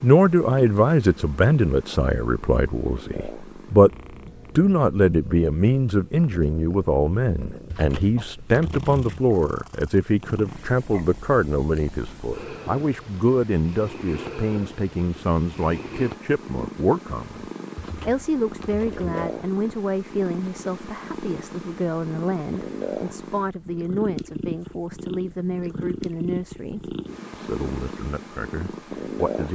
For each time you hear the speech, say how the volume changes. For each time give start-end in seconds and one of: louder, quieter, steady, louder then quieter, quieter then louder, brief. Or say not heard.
0.0-29.5 quieter.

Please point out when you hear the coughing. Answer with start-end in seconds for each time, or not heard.
not heard.